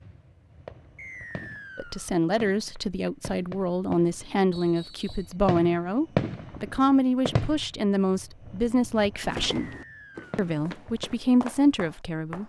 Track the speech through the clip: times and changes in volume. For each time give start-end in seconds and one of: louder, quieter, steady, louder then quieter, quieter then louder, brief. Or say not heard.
1.8-9.7 steady
10.3-12.4 brief.